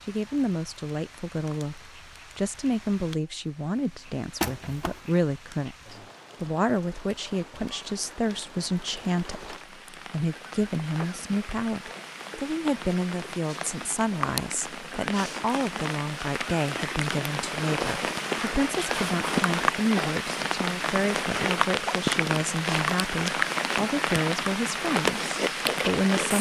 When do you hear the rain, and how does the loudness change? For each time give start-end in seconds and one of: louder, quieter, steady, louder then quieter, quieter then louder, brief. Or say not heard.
0.0-26.3 louder.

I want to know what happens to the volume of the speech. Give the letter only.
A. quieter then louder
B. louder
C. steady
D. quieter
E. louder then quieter
C.